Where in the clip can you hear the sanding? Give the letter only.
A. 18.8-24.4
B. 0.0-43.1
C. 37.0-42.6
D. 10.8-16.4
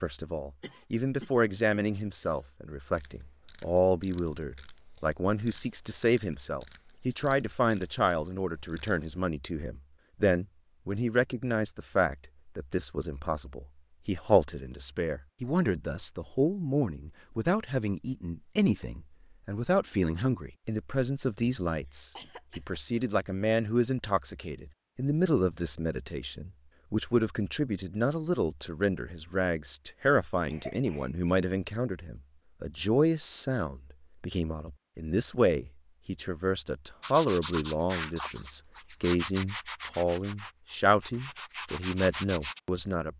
C.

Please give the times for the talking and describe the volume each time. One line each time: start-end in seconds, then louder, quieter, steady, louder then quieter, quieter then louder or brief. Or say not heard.
0.0-43.1 steady.